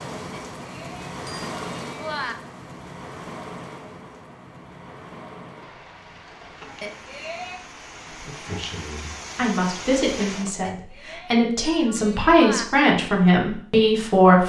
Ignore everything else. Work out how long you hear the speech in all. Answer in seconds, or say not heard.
6 s.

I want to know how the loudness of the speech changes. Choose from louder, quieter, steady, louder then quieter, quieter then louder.
louder.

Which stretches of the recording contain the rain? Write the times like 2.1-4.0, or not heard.
0.0-10.6.